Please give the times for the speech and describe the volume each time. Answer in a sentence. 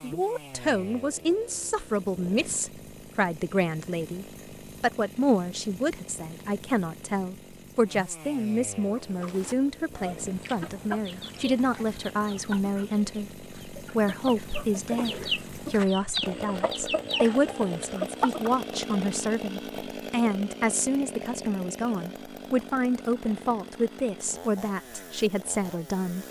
You can hear the speech from 0.0 to 26.2 s, at a steady volume.